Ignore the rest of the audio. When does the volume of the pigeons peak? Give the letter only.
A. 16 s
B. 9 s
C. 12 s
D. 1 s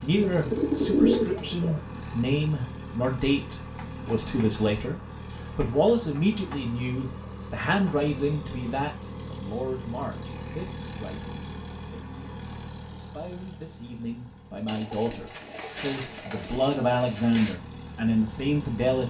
D.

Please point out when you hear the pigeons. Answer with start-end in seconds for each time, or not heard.
0.1-1.8, 14.7-17.6.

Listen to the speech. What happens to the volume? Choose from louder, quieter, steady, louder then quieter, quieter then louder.
quieter then louder.